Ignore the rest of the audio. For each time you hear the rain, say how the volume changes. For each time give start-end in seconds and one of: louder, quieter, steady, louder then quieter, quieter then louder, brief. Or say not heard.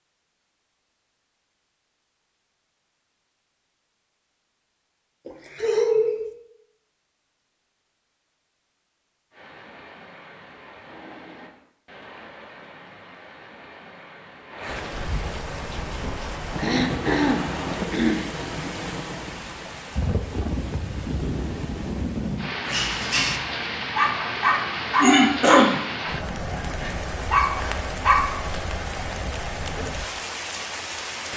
9.3-31.3 louder.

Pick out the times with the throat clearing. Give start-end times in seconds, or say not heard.
5.2-6.3, 16.6-18.2, 25.0-25.8.